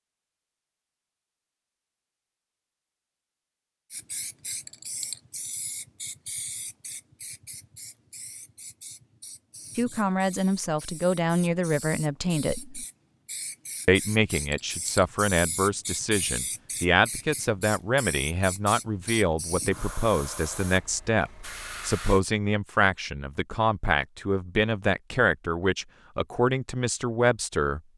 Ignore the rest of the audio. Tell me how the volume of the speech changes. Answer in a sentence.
The loudness of the speech stays about the same.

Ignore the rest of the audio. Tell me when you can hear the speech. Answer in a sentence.
You can hear the speech from 9.8 to 12.8 s and from 13.8 to 27.8 s.